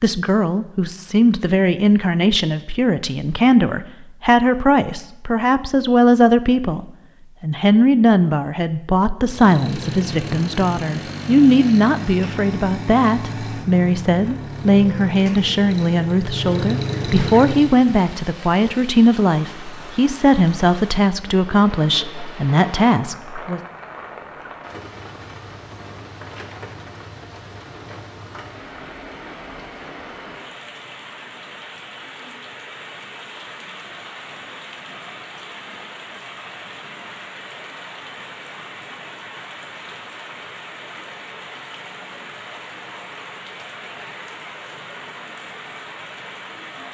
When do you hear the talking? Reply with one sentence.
You can hear the talking from 0.0 to 23.6 s.